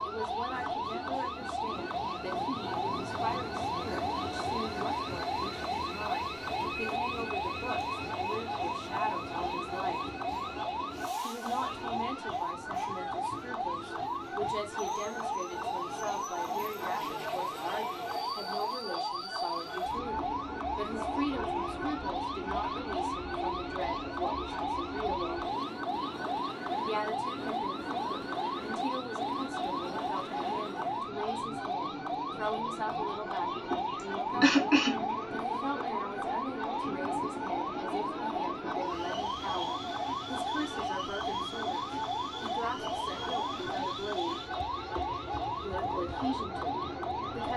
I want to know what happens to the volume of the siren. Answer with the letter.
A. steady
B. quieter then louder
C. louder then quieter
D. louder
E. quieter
A.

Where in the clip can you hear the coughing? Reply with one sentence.
The coughing can be heard from 33.7 to 35.0 s.